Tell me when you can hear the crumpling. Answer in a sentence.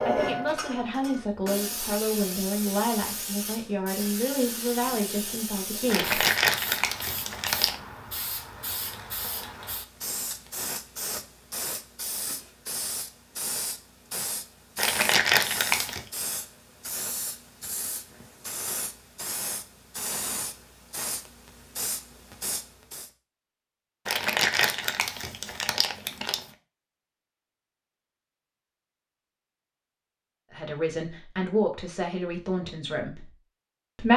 You can hear the crumpling from 5.8 to 7.8 s, from 14.8 to 16.1 s and from 24.1 to 26.4 s.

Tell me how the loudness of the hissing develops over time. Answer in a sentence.
The volume of the hissing stays about the same.